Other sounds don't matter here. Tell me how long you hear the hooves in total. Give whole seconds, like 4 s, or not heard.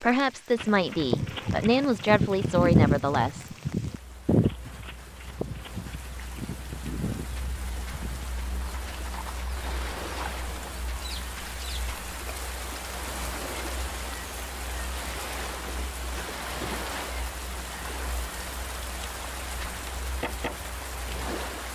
10 s.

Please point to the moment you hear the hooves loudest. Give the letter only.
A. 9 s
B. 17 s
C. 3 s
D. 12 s
C.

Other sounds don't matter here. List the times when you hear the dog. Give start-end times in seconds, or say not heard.
not heard.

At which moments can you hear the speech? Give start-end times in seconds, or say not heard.
0.0-3.5.